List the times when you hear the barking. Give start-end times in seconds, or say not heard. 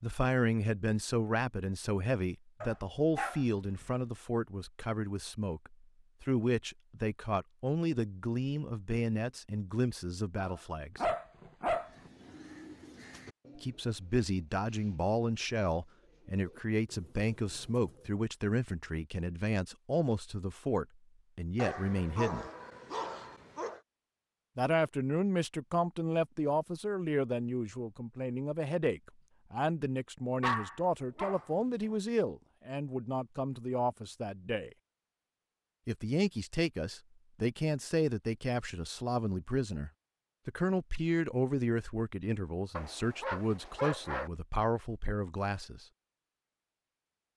2.6-3.9, 10.3-12.1, 21.6-23.8, 30.4-31.9, 42.8-44.3.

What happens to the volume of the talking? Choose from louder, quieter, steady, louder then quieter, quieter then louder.
steady.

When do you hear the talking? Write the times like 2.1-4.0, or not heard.
0.0-11.1, 13.6-22.5, 24.6-34.7, 35.9-45.9.